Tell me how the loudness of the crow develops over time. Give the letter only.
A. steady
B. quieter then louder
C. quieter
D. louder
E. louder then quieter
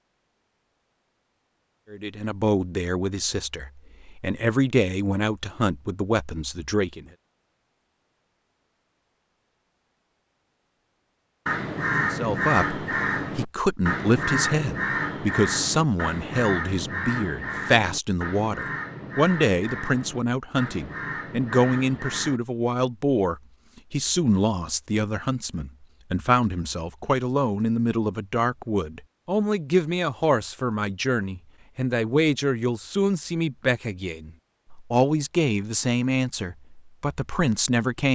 C.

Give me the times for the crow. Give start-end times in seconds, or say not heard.
11.4-22.4.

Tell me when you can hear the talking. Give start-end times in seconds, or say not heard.
1.9-7.0, 12.0-38.1.